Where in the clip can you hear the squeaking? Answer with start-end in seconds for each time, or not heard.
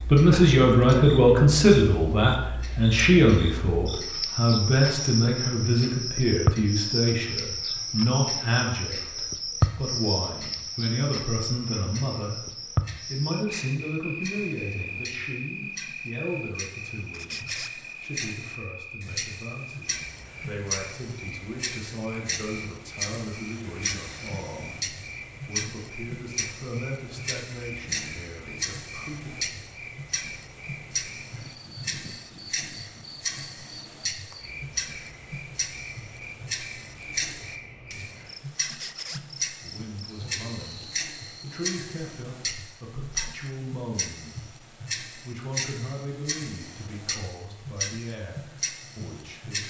17.1-17.8, 38.6-39.2.